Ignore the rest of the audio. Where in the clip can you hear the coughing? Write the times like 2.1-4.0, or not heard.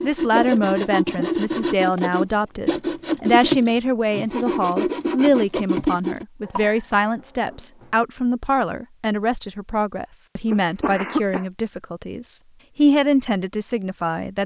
0.3-1.4, 6.5-7.8, 10.5-11.4.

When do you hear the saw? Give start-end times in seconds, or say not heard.
0.0-6.2.